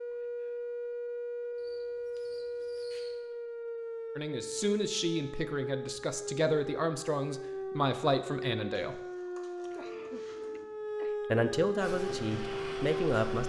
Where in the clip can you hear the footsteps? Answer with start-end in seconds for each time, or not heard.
not heard.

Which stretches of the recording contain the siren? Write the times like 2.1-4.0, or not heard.
0.0-13.4.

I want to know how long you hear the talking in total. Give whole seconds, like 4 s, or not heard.
7 s.